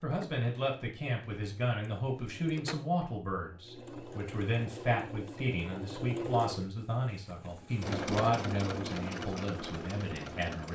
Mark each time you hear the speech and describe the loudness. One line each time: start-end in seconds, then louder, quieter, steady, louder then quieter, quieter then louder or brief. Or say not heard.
0.0-10.7 steady.